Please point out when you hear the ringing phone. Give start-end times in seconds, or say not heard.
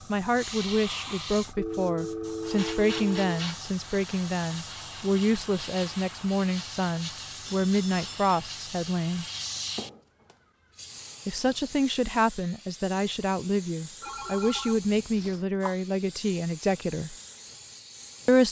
1.6-3.5, 7.5-8.4, 14.0-15.4.